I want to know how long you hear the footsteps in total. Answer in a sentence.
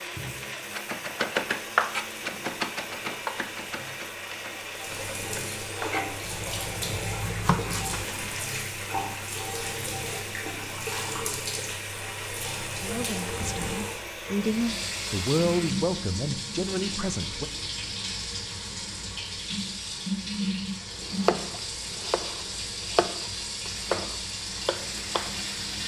You can't hear the footsteps here.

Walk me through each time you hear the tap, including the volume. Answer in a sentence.
You can hear the tap from 0.0 to 25.8 s, getting louder.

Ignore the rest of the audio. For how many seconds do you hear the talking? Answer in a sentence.
The talking can be heard for 5 seconds in total.